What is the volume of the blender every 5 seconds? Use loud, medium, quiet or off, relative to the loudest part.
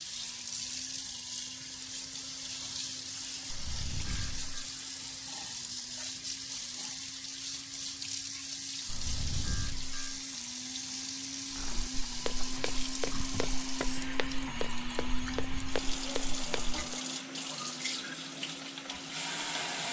quiet, quiet, loud, loud.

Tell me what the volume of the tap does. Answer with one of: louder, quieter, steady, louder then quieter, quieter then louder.
steady.